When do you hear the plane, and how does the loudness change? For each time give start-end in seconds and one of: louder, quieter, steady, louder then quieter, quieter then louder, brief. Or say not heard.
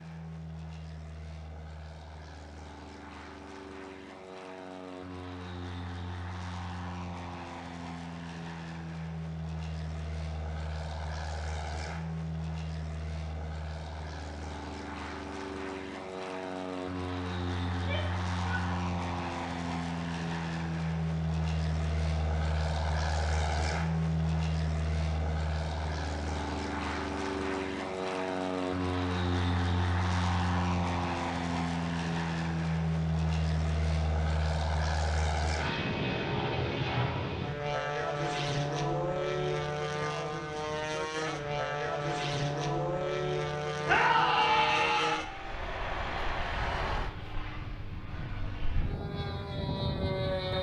0.0-50.5 louder.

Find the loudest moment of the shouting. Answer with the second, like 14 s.
44 s.